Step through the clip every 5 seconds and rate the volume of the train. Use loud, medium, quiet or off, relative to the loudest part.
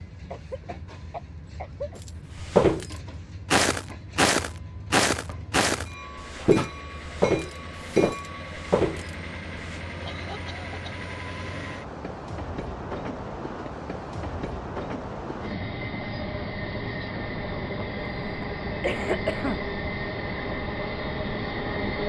quiet, medium, medium, loud, loud.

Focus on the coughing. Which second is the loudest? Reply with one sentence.
The volume of the coughing peaks at 19 seconds.